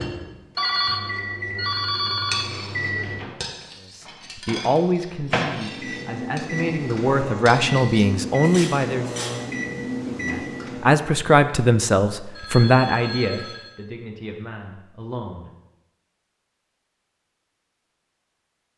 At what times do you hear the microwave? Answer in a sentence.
You can hear the microwave from 0.0 to 10.9 s.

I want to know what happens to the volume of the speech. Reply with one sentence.
The loudness of the speech goes up, then down.